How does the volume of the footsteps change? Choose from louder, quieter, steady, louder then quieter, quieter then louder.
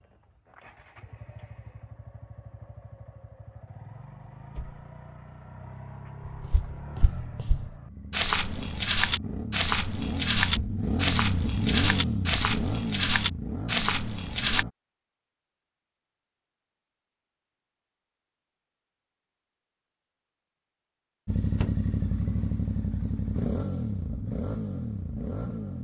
louder.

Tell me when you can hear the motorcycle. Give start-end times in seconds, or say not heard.
0.0-14.7, 21.2-25.7.